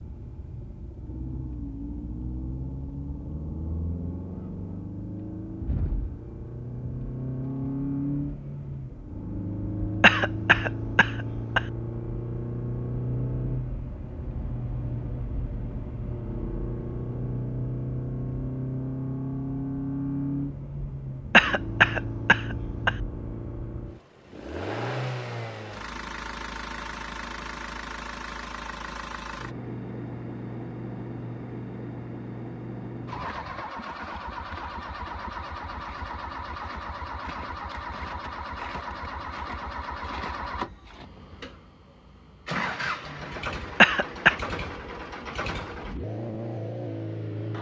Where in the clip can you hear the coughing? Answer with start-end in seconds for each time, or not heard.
10.0-11.6, 21.3-22.9, 43.8-44.4.